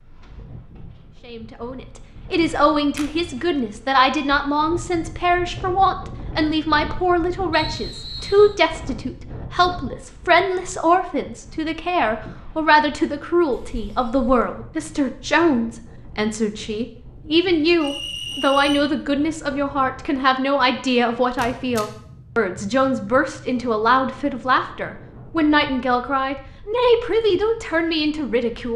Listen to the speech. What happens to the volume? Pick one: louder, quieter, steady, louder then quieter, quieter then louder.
steady.